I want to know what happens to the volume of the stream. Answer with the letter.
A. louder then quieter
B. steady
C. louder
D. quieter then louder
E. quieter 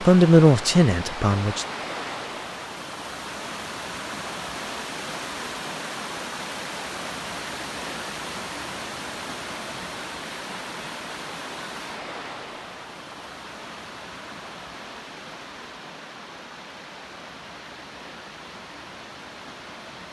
E.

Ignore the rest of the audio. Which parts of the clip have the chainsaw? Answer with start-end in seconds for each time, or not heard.
not heard.